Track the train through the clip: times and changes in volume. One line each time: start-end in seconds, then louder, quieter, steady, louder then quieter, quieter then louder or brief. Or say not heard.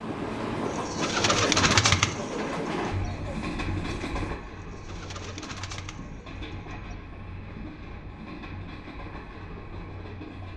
0.0-10.5 quieter.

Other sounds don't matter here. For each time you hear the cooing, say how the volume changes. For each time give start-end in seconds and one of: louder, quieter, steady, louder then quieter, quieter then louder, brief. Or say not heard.
0.7-7.0 quieter.